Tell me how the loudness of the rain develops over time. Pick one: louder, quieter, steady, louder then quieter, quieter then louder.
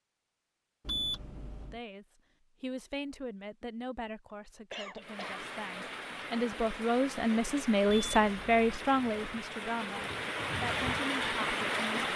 louder.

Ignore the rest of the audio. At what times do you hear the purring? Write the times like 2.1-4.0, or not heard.
not heard.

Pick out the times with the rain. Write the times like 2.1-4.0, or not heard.
5.0-12.1.